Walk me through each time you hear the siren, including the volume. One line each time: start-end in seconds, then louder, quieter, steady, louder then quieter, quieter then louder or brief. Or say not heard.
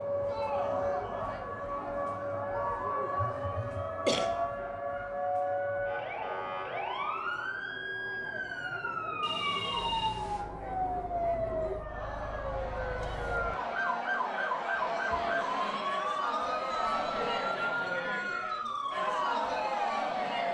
0.0-20.4 steady.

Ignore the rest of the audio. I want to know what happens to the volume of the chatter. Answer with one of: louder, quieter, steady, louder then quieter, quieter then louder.
quieter then louder.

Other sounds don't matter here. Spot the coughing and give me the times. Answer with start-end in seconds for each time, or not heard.
3.6-4.3.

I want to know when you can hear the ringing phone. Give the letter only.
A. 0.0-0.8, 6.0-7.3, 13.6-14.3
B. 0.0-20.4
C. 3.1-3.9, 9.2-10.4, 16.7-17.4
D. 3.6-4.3
C.